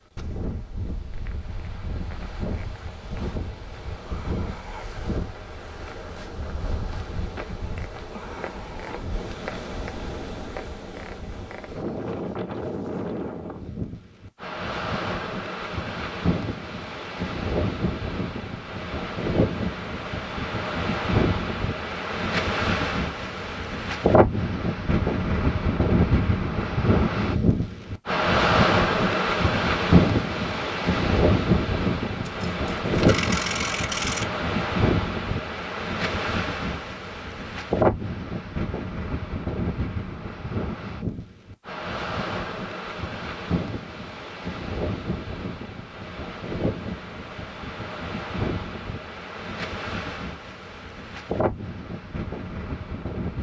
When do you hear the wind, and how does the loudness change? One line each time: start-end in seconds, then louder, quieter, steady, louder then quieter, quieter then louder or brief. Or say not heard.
0.1-53.3 louder then quieter.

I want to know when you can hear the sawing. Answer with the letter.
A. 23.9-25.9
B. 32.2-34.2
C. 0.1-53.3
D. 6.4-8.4
B.